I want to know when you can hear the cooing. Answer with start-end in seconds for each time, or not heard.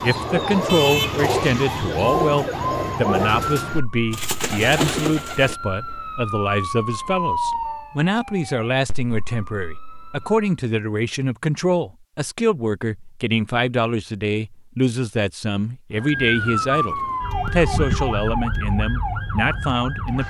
0.0-5.5.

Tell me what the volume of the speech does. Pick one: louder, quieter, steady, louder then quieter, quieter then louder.
steady.